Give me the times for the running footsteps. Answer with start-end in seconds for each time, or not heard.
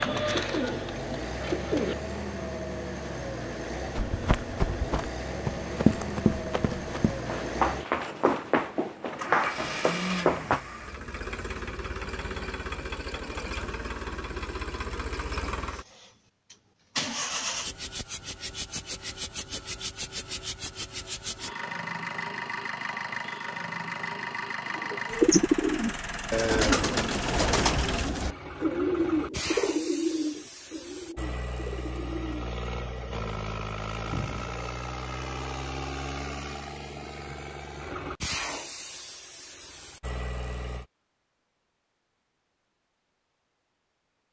4.0-10.6.